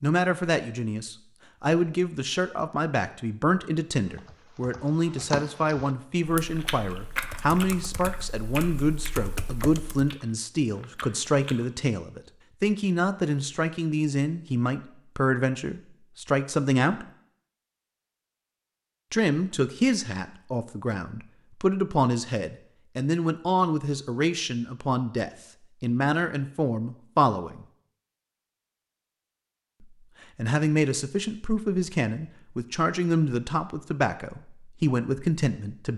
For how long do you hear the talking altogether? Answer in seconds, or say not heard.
32 s.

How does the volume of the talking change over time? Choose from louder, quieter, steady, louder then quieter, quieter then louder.
steady.